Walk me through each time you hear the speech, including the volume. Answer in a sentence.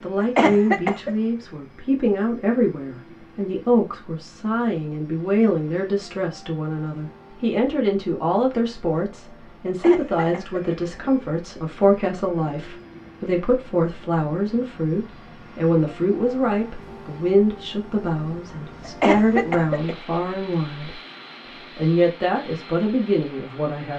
You can hear the speech from 0.0 to 21.0 s, at a steady volume; and briefly from 21.8 to 23.9 s.